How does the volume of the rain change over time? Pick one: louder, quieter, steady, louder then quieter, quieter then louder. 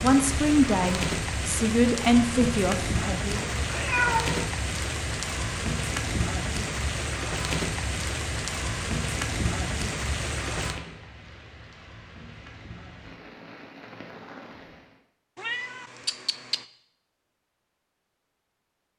quieter.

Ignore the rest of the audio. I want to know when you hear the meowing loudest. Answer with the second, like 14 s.
4 s.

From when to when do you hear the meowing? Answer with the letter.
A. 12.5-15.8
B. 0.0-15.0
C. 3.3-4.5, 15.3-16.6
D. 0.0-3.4
C.